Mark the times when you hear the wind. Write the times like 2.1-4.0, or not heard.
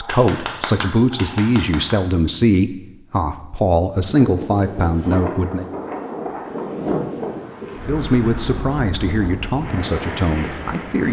4.0-11.0.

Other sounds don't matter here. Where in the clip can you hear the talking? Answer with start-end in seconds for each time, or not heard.
0.0-5.7, 7.8-11.0.